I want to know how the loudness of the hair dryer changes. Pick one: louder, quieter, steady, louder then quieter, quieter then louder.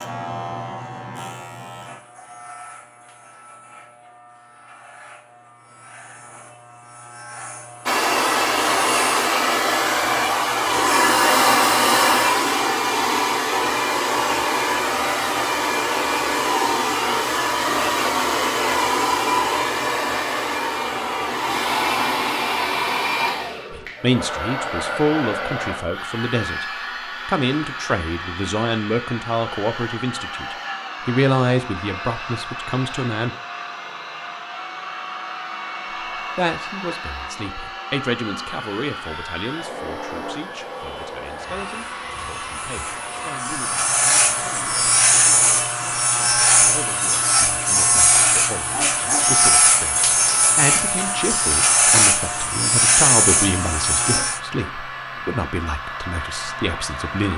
quieter.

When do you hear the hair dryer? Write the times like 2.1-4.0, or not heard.
7.8-57.3.